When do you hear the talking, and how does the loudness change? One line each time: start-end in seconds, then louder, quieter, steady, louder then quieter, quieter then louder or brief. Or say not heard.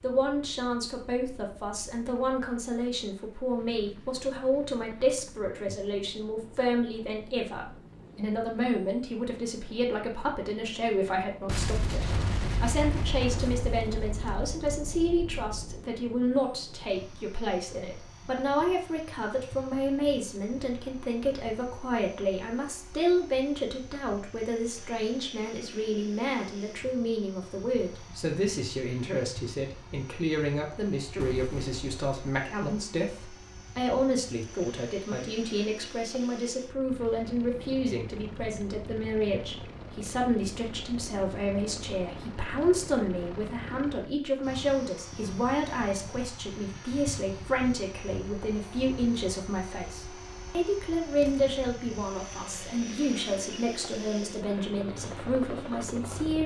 0.0-56.4 steady.